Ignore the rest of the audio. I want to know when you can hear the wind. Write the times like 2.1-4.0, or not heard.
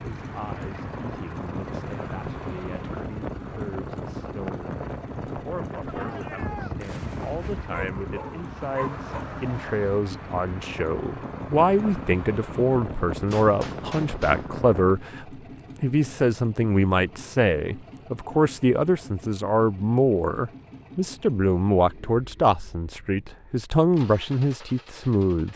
0.0-14.9.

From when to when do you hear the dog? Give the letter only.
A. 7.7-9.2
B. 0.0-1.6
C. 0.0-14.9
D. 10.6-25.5
A.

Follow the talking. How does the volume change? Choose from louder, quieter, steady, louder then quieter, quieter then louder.
louder.